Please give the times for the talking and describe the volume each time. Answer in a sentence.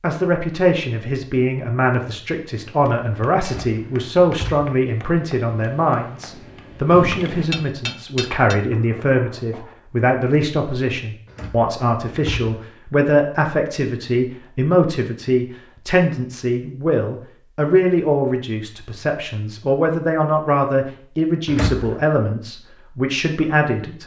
The talking can be heard from 0.0 to 24.0 s, at a steady volume.